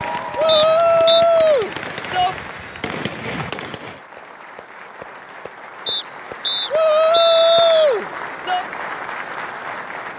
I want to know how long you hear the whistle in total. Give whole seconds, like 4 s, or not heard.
3 s.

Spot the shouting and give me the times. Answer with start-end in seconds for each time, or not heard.
0.3-2.4, 6.7-8.7.